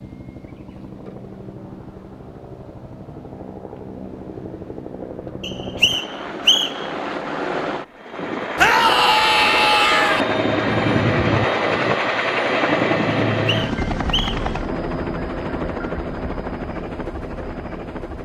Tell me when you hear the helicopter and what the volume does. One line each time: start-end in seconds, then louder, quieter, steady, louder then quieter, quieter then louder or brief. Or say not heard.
0.0-18.2 louder then quieter.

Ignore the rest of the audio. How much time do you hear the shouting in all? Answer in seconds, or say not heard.
2 s.